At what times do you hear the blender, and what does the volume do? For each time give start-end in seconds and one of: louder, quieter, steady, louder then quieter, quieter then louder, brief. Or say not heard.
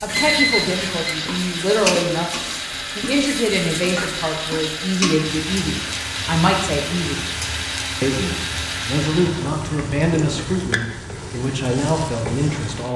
0.1-9.6 steady.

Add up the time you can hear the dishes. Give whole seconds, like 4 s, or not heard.
not heard.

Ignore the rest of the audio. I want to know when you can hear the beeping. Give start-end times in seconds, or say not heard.
0.1-1.2.